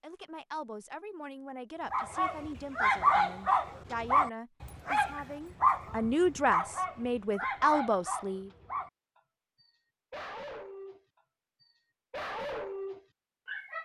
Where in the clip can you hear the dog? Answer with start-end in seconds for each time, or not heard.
1.9-8.9, 9.6-11.0, 11.6-13.7.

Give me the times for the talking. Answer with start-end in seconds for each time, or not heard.
0.0-8.5.